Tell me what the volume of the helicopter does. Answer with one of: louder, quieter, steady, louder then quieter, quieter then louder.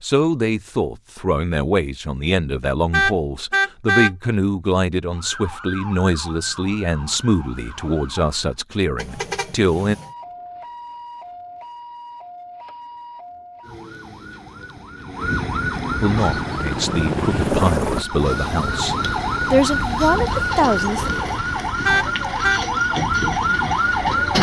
quieter.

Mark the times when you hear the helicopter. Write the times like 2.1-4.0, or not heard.
16.1-21.8.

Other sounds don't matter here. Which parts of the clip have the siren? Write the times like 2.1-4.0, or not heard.
5.0-8.6, 9.9-24.3.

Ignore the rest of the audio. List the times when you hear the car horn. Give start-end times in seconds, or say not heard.
2.9-4.1, 8.9-10.1, 21.9-22.6.